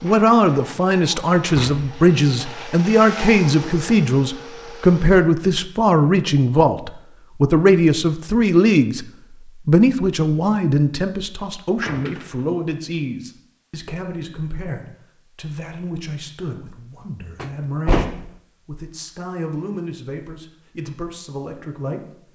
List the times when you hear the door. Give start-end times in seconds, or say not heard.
1.4-1.9, 11.8-12.6, 17.4-18.4.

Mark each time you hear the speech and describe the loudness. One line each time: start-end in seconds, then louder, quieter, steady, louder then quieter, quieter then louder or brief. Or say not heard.
0.0-22.1 quieter.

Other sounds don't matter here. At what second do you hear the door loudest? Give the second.
18 s.